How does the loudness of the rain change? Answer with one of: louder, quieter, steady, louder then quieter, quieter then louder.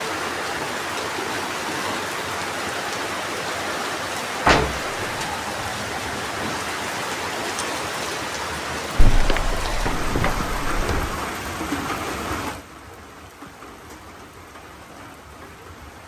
quieter.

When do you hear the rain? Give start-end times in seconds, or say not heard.
0.0-16.0.